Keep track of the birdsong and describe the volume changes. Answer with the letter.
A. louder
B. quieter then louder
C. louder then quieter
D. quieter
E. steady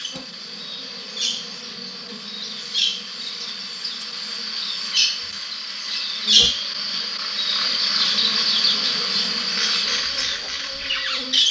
A.